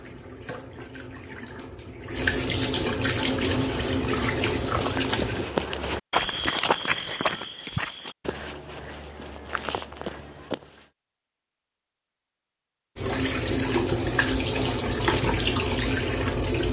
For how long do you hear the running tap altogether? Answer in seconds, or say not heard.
9 s.